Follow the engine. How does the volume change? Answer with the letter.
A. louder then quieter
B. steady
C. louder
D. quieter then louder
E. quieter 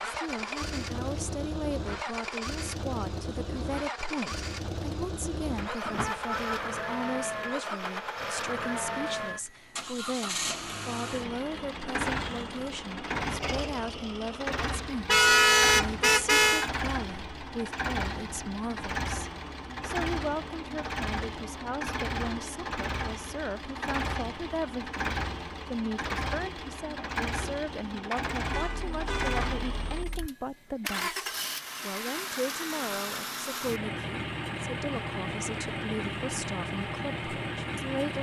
B.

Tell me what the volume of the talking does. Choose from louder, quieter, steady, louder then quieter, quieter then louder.
steady.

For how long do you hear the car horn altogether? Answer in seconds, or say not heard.
4 s.